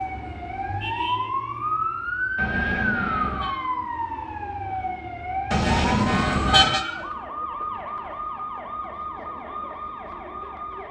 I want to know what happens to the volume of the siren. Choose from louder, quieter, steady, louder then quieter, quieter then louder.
quieter.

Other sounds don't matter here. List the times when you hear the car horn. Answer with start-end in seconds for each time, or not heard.
2.4-3.5, 5.5-6.8.